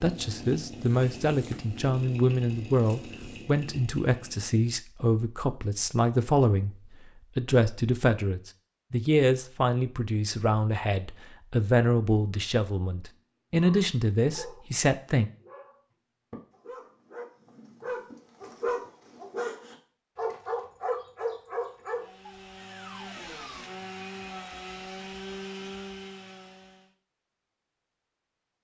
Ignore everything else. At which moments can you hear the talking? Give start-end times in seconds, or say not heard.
0.0-6.8, 7.3-15.3.